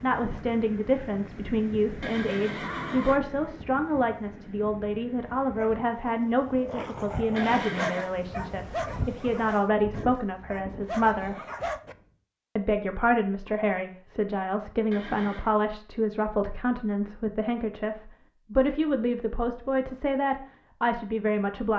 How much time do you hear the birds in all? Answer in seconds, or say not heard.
not heard.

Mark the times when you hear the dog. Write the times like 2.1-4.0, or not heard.
5.5-11.9.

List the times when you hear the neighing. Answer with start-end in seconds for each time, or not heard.
2.0-3.2, 7.3-8.1, 14.9-15.6.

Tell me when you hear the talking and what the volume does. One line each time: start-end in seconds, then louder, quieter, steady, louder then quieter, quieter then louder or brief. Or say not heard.
0.0-11.4 steady
12.6-21.7 steady.